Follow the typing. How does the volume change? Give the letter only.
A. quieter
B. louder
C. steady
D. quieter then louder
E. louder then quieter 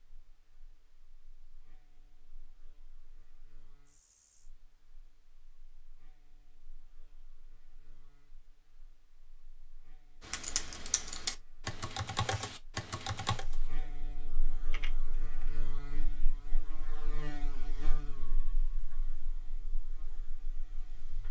A.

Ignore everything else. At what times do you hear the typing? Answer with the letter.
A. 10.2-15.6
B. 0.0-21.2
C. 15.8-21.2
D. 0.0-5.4
A.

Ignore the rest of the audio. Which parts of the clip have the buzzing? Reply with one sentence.
You can hear the buzzing from 0.0 to 21.2 s.